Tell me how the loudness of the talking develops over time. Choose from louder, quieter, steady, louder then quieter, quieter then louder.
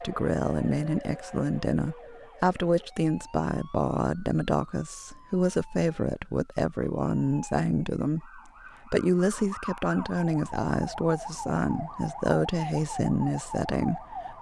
steady.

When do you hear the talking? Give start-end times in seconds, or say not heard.
0.0-14.3.